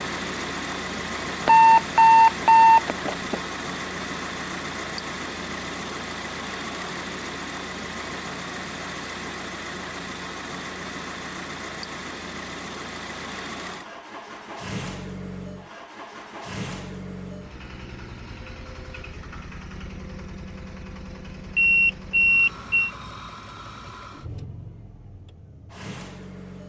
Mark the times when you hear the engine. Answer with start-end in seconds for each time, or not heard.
0.0-26.6.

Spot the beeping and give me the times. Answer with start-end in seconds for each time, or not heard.
1.4-3.4, 21.6-22.9.